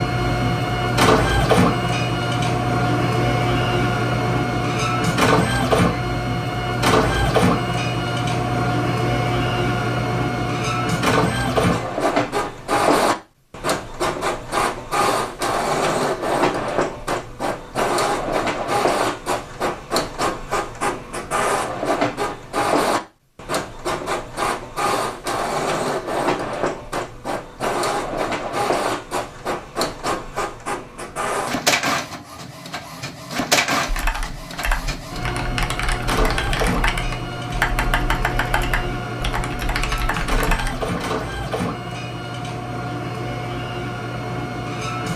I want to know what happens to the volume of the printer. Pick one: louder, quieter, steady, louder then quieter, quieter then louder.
quieter.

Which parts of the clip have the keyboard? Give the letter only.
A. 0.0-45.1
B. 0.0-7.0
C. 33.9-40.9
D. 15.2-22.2
C.